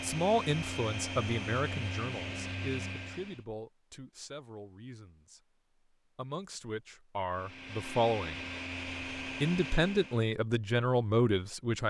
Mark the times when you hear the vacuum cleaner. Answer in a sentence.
The vacuum cleaner can be heard from 0.0 to 3.4 s and from 7.3 to 10.3 s.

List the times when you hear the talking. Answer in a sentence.
You can hear the talking from 0.0 to 5.4 s, from 6.2 to 8.4 s and from 9.4 to 11.8 s.